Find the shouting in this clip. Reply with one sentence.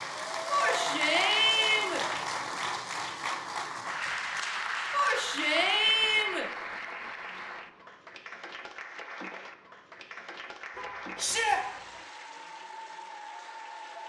The shouting can be heard from 0.5 to 2.0 s, from 4.9 to 6.5 s and from 11.2 to 11.6 s.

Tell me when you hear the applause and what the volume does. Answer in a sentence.
The applause can be heard from 0.0 to 14.0 s, getting quieter.